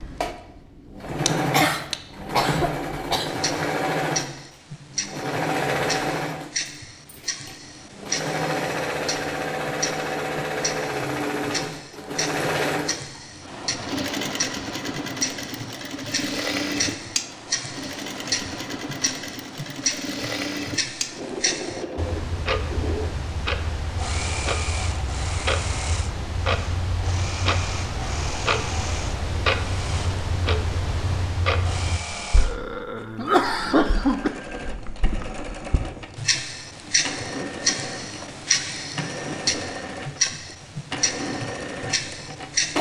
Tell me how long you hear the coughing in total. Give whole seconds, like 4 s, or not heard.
4 s.